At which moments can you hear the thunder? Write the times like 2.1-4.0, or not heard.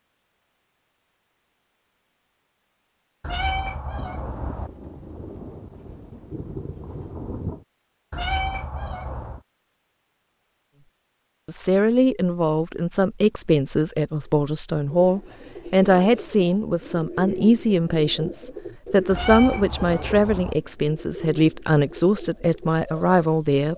4.0-7.7.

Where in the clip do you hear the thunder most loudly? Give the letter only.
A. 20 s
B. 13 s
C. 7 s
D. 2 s
C.